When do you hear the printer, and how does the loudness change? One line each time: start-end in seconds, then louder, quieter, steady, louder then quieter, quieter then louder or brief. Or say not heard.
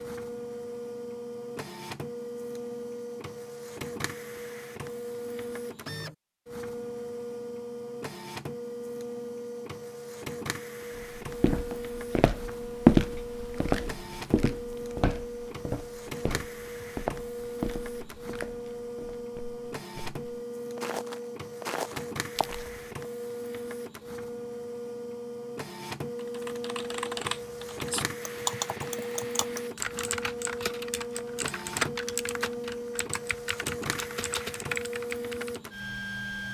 0.0-36.5 steady.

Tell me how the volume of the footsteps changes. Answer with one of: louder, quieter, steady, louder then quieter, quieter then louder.
quieter then louder.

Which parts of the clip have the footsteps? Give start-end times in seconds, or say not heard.
11.2-22.8.